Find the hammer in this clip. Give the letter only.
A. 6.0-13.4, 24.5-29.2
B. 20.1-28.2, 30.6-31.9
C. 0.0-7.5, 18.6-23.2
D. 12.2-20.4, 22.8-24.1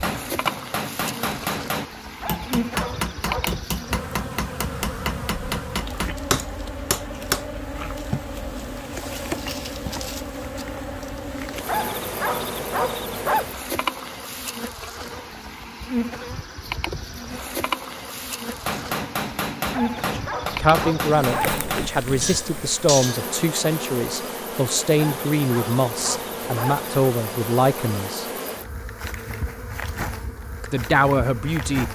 C.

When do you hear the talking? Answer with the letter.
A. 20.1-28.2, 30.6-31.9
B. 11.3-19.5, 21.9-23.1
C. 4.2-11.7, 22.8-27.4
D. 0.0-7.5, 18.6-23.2
A.